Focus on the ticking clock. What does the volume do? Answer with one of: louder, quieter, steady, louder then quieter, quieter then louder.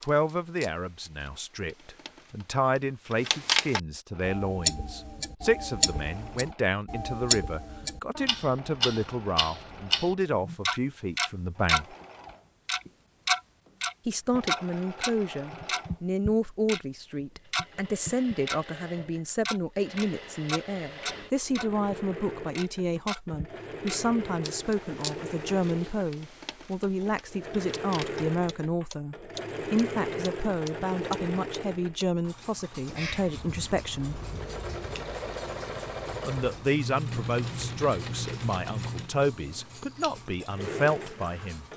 quieter.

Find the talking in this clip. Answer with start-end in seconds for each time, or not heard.
0.1-11.9, 14.1-34.2, 36.2-41.6.